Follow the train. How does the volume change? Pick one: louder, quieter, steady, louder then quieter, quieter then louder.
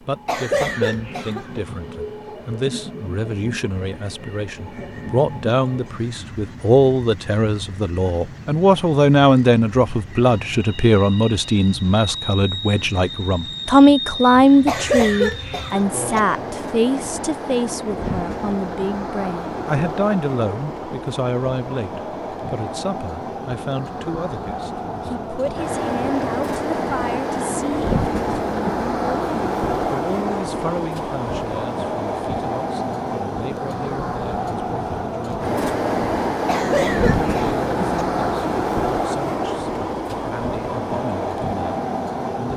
louder.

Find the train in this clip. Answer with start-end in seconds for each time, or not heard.
0.0-42.5.